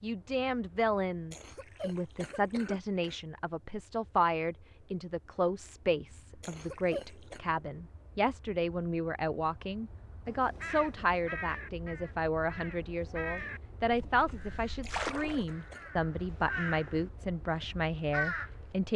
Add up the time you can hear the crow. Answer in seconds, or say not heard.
8 s.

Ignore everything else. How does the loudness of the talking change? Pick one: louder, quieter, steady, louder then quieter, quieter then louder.
steady.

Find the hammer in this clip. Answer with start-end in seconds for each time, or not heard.
not heard.